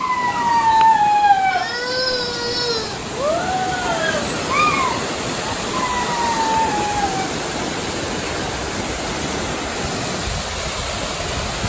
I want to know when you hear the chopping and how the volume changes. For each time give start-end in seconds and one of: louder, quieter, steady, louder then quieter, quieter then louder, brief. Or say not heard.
not heard.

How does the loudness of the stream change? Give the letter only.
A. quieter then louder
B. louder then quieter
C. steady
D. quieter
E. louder
E.